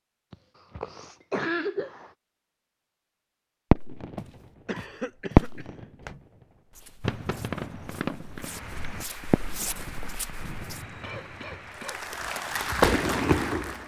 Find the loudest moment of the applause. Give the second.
13 s.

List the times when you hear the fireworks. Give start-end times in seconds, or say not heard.
3.7-4.2, 5.3-5.8, 7.0-11.6, 12.8-13.8.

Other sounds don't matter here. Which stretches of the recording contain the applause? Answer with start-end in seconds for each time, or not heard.
8.3-13.8.